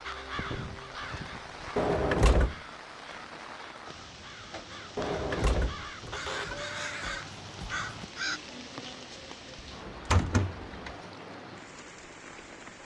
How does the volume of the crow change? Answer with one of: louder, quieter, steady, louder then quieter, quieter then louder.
quieter then louder.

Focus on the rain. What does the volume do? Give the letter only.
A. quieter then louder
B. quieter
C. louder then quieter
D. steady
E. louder
D.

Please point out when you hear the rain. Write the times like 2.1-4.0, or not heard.
0.0-12.7.